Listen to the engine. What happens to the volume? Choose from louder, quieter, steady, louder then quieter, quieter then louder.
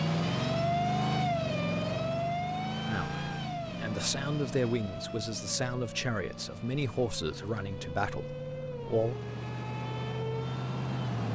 quieter then louder.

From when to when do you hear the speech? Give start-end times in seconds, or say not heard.
2.9-9.2.